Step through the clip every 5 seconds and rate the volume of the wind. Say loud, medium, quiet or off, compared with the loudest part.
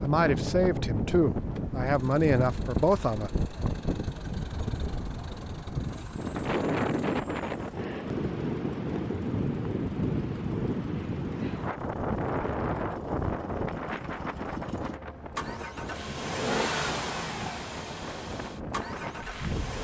loud, loud, loud, medium.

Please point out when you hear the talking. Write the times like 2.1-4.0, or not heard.
0.0-3.3.